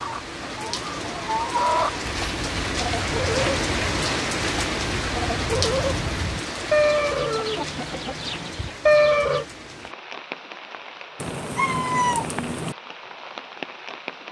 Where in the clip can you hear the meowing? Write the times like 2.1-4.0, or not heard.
11.2-12.8.